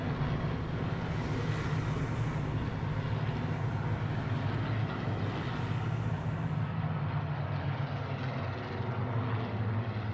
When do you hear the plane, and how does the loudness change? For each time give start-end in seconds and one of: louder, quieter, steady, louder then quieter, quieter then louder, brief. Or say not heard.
0.0-10.0 steady.